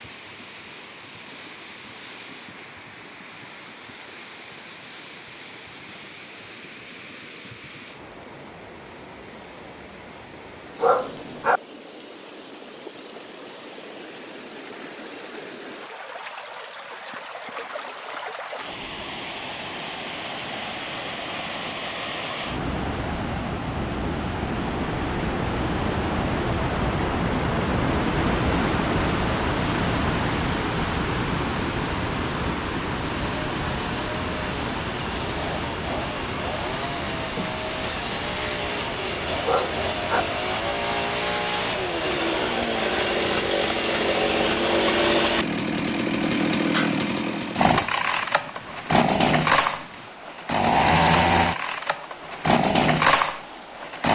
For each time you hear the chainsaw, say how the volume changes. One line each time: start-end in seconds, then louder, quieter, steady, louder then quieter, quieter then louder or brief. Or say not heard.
33.0-54.1 louder.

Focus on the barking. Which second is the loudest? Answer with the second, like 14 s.
11 s.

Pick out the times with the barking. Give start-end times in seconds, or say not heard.
10.8-11.6, 39.4-40.2.